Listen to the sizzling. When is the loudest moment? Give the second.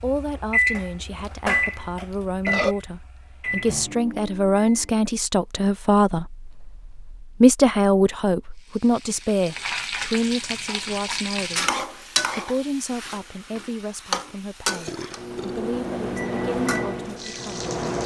12 s.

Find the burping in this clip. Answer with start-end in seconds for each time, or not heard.
0.7-2.8, 14.7-15.6.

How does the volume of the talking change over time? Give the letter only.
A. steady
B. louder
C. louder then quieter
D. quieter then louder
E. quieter
C.